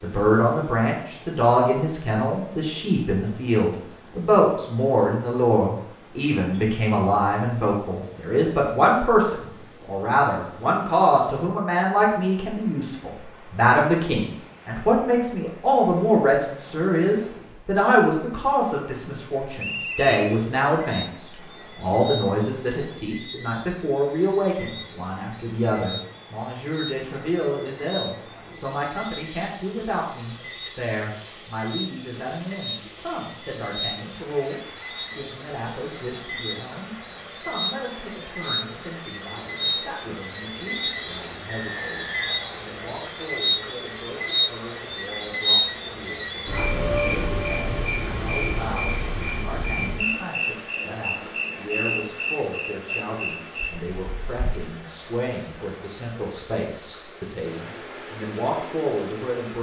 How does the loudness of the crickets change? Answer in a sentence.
The volume of the crickets goes up, then down.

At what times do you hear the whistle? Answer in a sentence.
You can hear the whistle from 19.6 to 20.4 s and from 41.5 to 42.5 s.